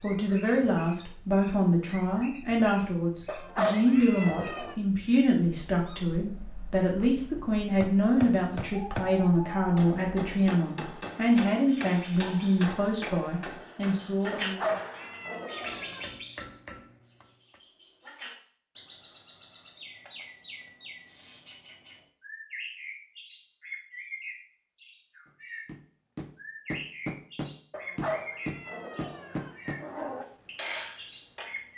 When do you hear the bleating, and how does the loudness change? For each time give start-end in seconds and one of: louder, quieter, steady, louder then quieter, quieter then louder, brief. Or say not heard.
not heard.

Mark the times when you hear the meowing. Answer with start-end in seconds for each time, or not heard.
3.2-4.8, 14.3-16.1, 27.7-30.2.